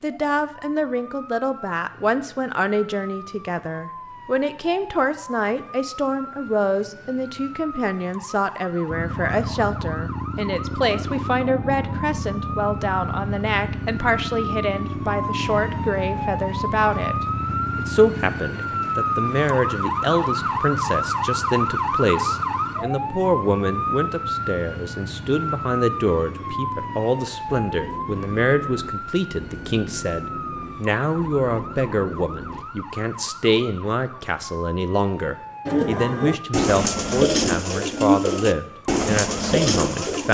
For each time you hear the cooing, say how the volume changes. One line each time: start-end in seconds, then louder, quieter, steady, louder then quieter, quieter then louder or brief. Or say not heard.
35.6-40.2 steady.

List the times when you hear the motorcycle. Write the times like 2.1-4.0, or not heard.
8.9-32.6.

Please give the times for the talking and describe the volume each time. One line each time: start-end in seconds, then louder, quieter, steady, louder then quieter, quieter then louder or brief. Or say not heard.
0.0-40.2 steady.